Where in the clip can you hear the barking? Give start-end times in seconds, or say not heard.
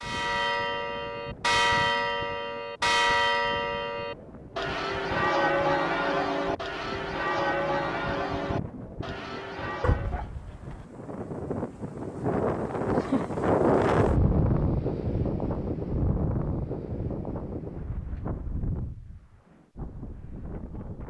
9.8-10.8.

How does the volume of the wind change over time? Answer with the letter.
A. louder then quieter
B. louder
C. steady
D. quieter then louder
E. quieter
A.